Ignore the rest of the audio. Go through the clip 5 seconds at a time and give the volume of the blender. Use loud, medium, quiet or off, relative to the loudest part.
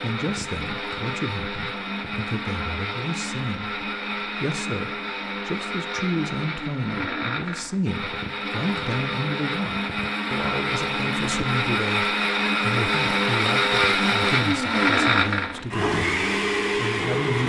medium, medium, loud, loud.